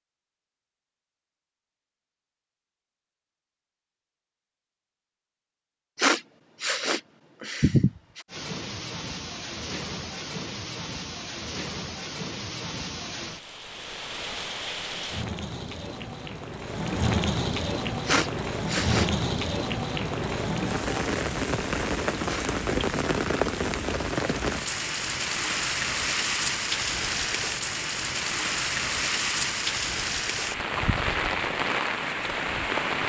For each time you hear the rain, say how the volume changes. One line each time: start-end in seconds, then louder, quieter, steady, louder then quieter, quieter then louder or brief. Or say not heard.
8.2-33.0 louder.